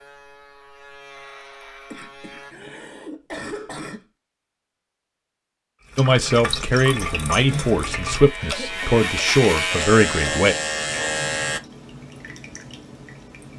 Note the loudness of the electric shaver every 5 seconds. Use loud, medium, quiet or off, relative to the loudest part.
quiet, loud, loud.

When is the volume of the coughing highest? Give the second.
3 s.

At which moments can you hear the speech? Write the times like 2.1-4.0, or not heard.
6.0-10.6.